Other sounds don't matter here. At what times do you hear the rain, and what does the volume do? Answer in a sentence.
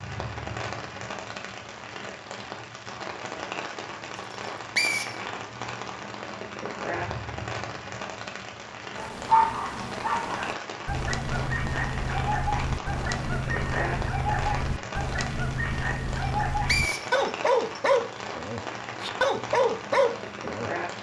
You can hear the rain from 0.0 to 20.9 s, at a steady volume.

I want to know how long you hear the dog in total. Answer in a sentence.
The dog can be heard for 12 seconds in total.